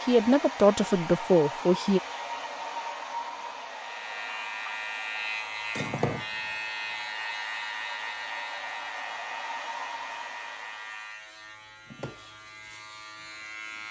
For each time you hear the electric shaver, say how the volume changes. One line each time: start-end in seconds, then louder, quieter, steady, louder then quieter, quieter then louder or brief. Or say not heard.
3.7-13.8 quieter.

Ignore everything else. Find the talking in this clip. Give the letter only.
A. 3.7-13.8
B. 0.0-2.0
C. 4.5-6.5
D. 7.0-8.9
B.